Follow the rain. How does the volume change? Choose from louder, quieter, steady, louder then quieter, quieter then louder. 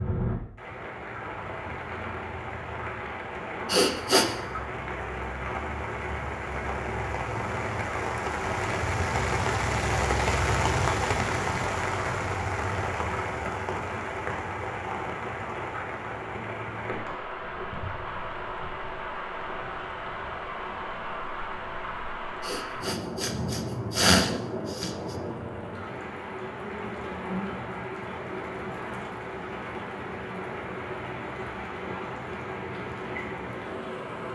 louder then quieter.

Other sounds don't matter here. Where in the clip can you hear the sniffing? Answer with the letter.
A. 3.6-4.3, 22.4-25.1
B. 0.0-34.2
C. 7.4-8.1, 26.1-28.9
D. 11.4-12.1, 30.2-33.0
A.